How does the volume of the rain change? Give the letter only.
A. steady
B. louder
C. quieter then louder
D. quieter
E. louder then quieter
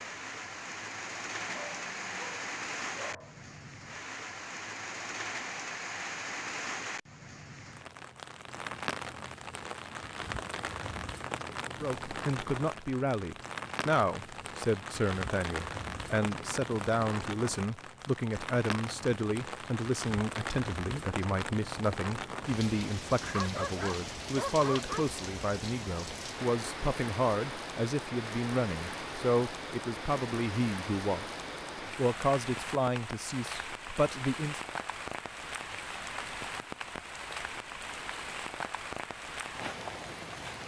A.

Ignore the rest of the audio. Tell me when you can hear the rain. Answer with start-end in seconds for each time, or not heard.
0.0-40.6.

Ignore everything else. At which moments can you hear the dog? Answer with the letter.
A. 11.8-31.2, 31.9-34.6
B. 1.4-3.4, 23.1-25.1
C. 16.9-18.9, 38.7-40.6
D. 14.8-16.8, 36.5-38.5
B.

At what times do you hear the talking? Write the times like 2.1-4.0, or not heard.
11.8-31.2, 31.9-34.6.